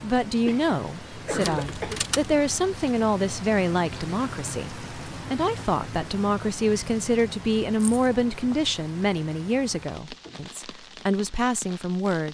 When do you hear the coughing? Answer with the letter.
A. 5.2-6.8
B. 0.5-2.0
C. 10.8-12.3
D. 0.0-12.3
B.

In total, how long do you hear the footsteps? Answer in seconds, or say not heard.
not heard.